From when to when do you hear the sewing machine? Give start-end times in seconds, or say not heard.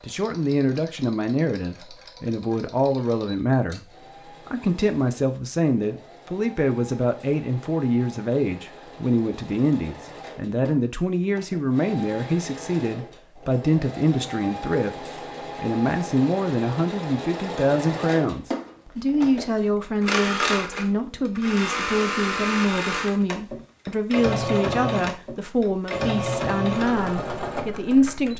0.0-28.3.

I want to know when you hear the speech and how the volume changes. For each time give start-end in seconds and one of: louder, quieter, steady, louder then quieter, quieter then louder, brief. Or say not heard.
0.0-28.3 steady.